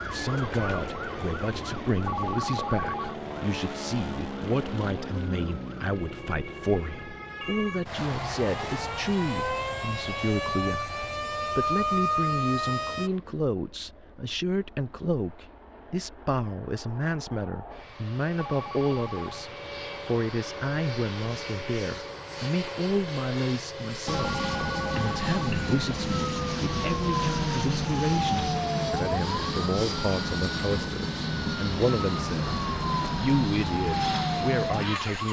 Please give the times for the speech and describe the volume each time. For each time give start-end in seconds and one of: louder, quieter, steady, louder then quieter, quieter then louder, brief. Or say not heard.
0.1-35.2 steady.